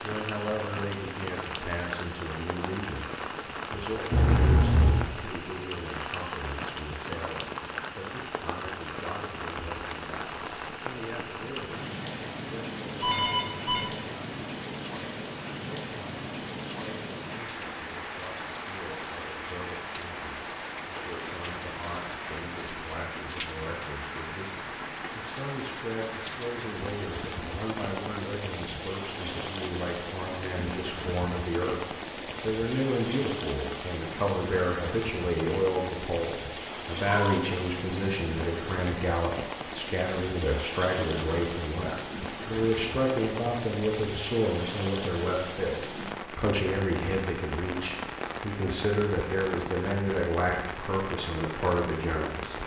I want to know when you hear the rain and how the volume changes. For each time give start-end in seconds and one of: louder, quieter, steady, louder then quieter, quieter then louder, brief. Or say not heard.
0.0-52.6 steady.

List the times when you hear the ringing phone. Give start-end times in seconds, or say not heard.
13.0-13.9.